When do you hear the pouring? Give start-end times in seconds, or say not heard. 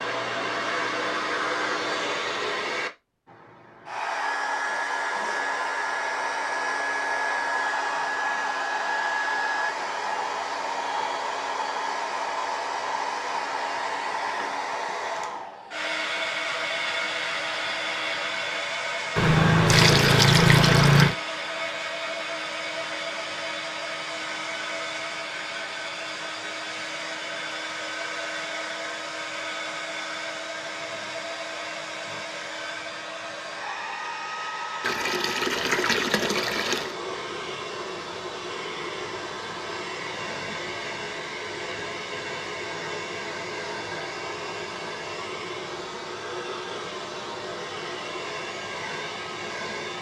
19.1-21.1, 34.8-37.0.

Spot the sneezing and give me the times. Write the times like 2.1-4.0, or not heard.
not heard.